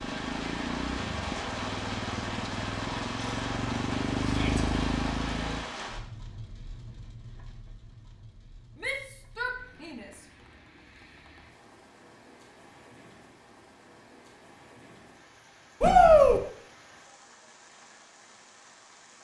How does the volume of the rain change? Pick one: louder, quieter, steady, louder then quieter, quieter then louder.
quieter.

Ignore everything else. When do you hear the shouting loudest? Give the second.
16 s.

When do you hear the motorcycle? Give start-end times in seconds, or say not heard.
0.0-5.7.